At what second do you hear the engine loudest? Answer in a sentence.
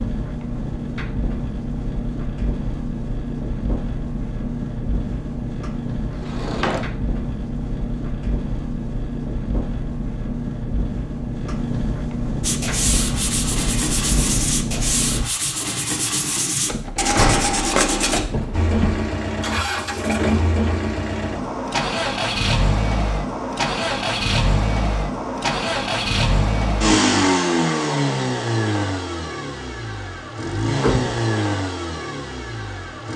The loudest moment of the engine is at 27 seconds.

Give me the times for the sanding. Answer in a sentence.
The sanding can be heard from 12.4 to 18.2 s.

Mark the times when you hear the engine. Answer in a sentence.
You can hear the engine from 0.0 to 15.2 s and from 18.5 to 33.1 s.